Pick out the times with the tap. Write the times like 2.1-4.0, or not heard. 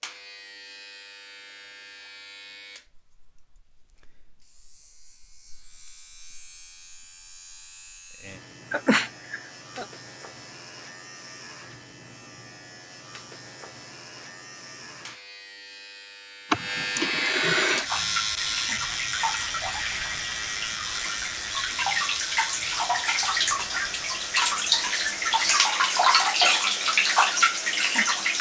17.6-28.3.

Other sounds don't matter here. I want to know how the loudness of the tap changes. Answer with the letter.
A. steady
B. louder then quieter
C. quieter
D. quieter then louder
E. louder
E.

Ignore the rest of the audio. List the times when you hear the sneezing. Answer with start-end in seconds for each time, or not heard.
8.7-9.8, 16.5-17.9.